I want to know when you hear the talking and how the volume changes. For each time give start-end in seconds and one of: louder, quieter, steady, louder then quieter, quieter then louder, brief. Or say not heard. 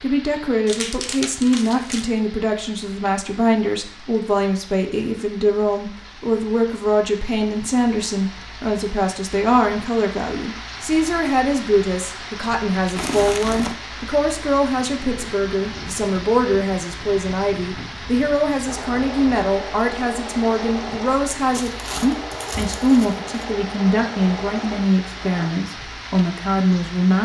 0.0-27.2 steady.